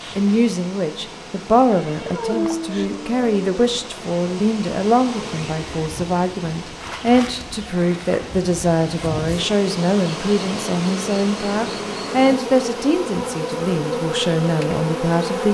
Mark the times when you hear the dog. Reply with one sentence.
The dog can be heard from 2.0 to 3.5 s.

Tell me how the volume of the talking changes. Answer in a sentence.
The volume of the talking stays about the same.